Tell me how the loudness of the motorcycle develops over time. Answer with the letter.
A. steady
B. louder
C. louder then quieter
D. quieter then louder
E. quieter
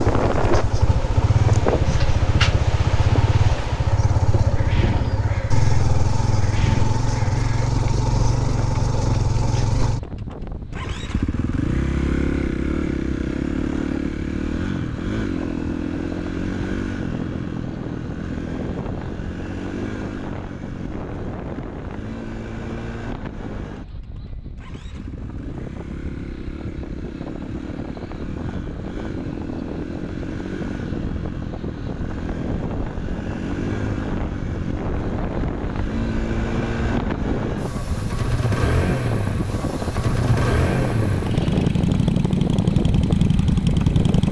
D.